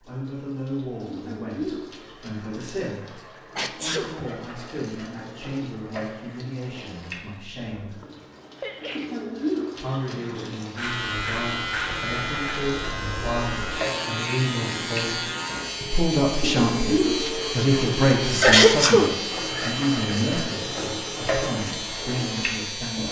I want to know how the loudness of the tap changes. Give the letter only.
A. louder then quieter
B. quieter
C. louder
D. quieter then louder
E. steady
C.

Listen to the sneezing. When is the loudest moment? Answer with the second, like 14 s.
19 s.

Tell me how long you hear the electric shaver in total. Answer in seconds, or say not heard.
12 s.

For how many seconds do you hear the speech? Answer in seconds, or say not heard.
21 s.